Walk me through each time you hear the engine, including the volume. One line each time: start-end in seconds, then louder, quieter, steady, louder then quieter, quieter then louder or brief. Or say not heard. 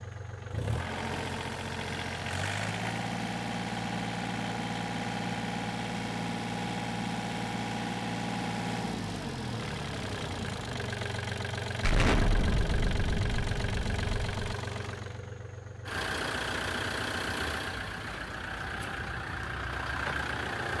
0.0-20.7 steady.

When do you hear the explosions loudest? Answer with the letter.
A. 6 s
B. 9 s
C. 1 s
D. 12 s
D.